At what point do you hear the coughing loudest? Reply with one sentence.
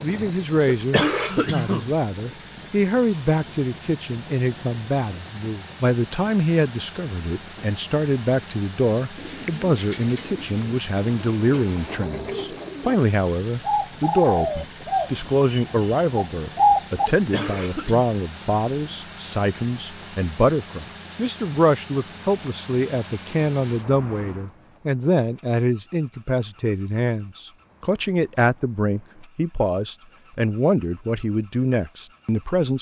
The volume of the coughing peaks at 1 second.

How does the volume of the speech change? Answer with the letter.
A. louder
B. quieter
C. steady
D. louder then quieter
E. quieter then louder
C.